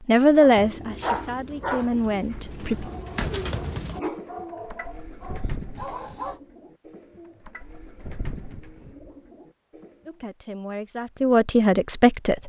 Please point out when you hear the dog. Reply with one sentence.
The dog can be heard from 0.4 to 6.3 s.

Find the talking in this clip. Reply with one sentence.
You can hear the talking from 0.1 to 2.9 s and from 10.1 to 12.4 s.